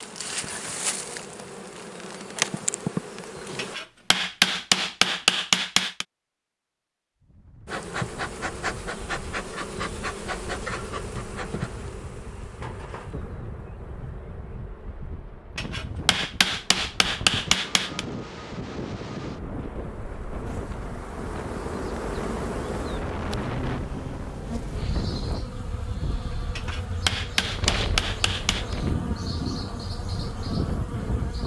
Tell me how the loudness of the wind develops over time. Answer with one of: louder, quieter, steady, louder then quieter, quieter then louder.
louder.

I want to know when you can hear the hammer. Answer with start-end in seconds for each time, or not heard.
3.5-6.0, 15.6-18.1, 26.6-28.8.